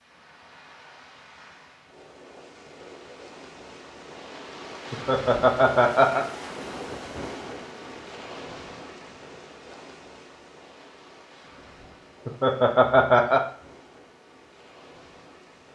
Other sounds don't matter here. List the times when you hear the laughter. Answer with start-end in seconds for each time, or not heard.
4.9-6.2, 12.2-13.4.